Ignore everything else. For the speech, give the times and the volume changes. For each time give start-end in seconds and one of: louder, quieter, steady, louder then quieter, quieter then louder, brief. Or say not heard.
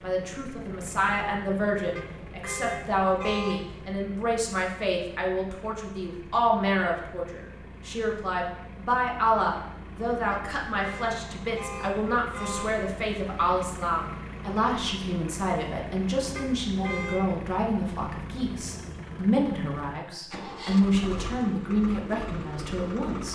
0.0-23.2 steady.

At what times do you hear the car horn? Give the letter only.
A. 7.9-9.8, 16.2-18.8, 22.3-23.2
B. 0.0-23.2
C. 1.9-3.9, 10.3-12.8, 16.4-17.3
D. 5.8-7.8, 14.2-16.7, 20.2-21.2
C.